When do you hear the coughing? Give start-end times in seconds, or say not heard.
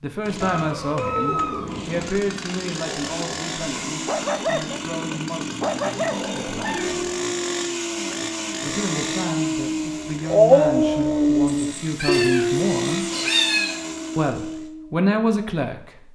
not heard.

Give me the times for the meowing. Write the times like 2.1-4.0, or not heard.
0.4-2.0, 6.0-7.0, 11.4-13.8.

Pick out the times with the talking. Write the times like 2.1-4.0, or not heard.
0.0-6.9, 8.6-13.1, 14.2-16.0.